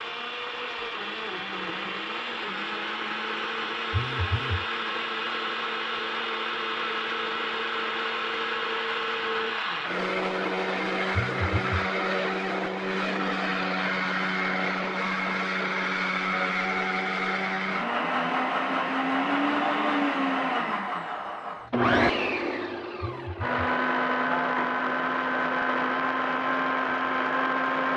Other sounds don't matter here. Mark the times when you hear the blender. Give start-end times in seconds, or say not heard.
0.0-27.9.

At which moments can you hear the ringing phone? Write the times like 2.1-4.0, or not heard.
3.9-4.7, 11.2-11.8, 23.0-23.6.